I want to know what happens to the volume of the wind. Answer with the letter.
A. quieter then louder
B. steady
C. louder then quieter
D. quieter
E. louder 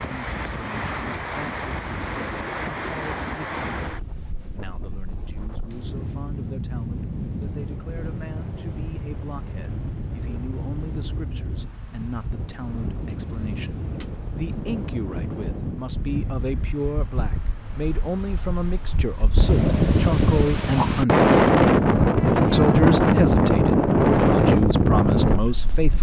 E.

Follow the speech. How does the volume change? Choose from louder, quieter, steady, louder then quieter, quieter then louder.
louder.